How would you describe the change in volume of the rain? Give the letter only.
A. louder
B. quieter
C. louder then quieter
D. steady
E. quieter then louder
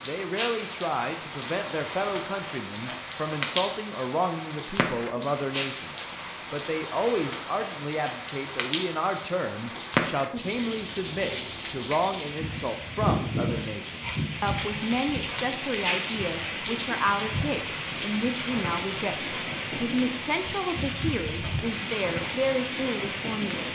D.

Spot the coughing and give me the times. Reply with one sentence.
The coughing can't be heard in this clip.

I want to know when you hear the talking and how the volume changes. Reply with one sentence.
You can hear the talking from 0.1 to 23.7 s, at a steady volume.